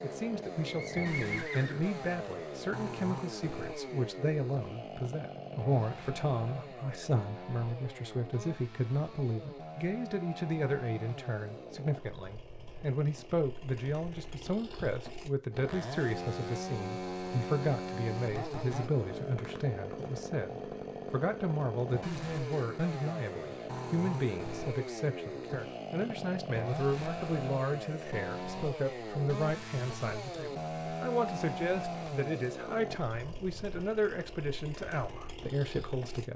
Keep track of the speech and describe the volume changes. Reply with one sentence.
The loudness of the speech stays about the same.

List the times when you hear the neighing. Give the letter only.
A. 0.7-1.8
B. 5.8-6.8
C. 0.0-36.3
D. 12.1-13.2
A.